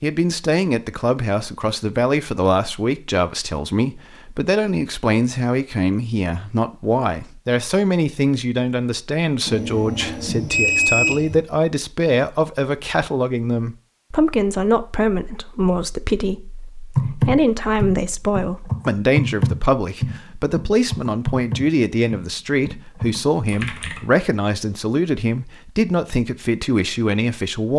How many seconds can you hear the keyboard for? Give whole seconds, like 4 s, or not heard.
7 s.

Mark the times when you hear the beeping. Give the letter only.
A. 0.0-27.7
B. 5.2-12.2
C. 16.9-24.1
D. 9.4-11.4
D.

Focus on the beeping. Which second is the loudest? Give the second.
11 s.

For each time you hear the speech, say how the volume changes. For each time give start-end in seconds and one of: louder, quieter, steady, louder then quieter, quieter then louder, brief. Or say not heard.
0.0-27.7 steady.